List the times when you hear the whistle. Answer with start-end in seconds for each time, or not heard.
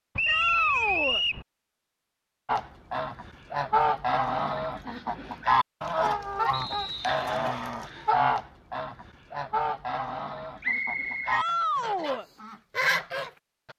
0.1-1.4, 6.5-7.3, 10.6-11.4.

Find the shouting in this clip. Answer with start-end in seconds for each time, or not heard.
0.2-1.2, 11.3-12.2.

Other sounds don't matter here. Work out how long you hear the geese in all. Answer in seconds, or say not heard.
11 s.